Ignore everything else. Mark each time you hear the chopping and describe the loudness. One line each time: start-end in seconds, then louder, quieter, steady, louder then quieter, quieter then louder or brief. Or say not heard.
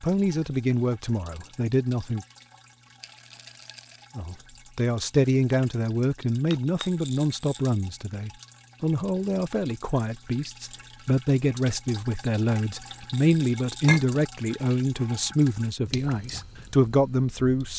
not heard.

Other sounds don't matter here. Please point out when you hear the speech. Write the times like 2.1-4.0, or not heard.
0.0-2.2, 4.2-17.7.